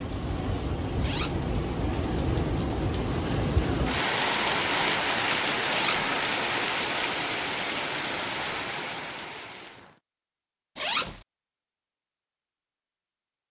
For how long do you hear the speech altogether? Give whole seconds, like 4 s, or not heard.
not heard.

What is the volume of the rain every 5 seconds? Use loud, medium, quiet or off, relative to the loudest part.
loud, loud, off.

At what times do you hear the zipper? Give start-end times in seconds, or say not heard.
1.0-1.4, 5.7-6.1, 10.8-11.2.